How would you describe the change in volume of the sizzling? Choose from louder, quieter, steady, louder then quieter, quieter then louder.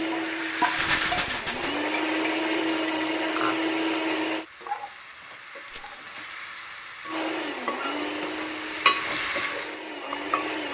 quieter then louder.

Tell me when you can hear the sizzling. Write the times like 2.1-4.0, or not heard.
0.0-10.6.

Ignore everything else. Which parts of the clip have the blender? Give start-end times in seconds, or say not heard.
0.0-4.5, 7.0-10.6.